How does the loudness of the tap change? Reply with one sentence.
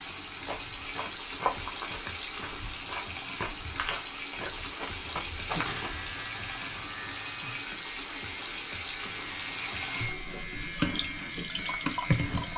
The volume of the tap stays about the same.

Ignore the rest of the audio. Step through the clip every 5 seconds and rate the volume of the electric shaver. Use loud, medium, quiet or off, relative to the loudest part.
off, loud, loud.